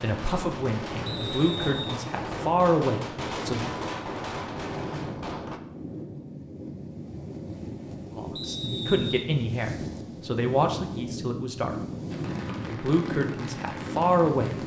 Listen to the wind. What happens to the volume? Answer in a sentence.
The volume of the wind goes up.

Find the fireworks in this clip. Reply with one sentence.
The fireworks can be heard from 0.0 to 5.6 s and from 12.1 to 14.6 s.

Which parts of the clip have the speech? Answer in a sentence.
The speech can be heard from 0.0 to 3.8 s, from 8.1 to 11.8 s and from 12.4 to 14.6 s.